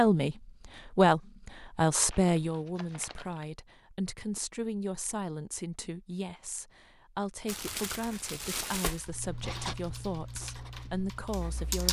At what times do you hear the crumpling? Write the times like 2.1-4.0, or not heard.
2.1-3.5, 7.5-9.1.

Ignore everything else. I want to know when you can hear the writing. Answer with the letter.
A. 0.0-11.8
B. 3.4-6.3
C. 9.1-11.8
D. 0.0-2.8
C.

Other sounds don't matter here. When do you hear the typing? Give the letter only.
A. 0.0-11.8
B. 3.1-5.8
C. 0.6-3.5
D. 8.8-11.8
D.